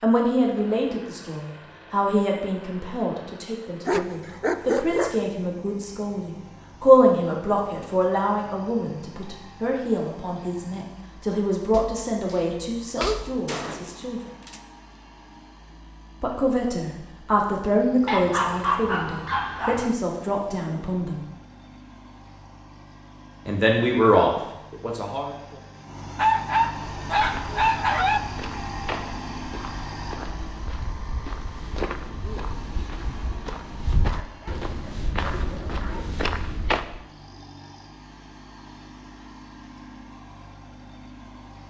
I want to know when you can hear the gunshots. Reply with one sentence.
The gunshots can be heard from 13.4 to 14.7 s.